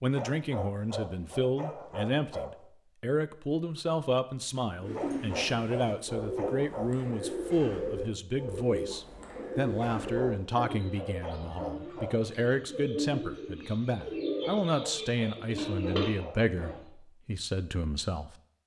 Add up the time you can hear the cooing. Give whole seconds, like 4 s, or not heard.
12 s.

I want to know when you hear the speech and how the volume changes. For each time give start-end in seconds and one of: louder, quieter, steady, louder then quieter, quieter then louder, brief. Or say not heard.
0.0-18.4 steady.